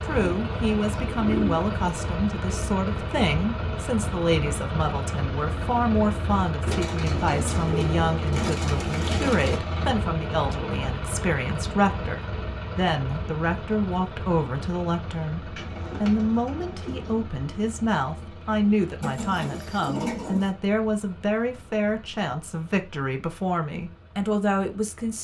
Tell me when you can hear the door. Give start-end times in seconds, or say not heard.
not heard.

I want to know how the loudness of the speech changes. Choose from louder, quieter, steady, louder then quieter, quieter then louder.
steady.